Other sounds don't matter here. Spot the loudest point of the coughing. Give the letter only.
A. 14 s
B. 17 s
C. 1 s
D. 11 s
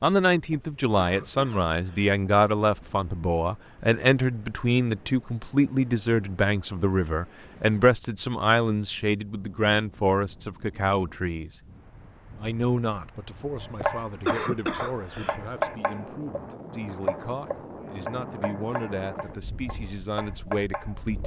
A.